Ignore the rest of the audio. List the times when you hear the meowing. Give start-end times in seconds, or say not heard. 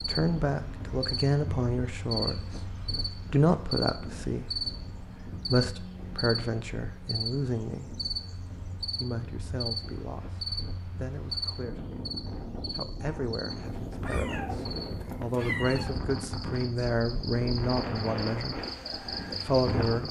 13.8-15.9.